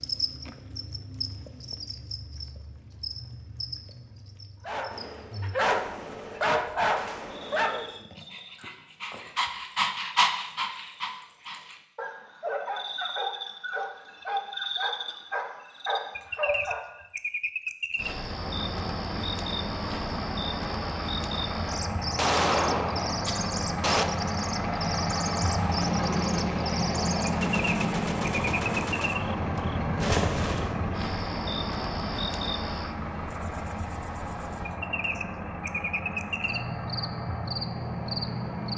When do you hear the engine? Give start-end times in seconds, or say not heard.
17.9-38.7.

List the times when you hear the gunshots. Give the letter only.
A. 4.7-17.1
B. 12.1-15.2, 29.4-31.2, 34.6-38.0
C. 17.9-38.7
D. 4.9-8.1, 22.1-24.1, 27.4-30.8
D.